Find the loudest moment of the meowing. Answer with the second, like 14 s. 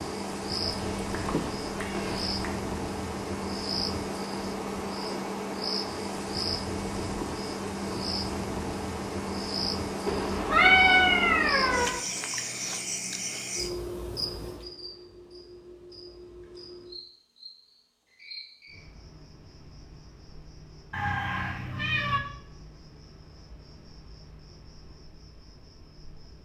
11 s.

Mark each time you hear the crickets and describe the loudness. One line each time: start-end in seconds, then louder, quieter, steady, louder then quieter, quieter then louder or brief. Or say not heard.
0.0-26.3 quieter.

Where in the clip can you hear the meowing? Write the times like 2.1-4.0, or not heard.
0.7-2.4, 10.1-12.0, 20.9-22.2.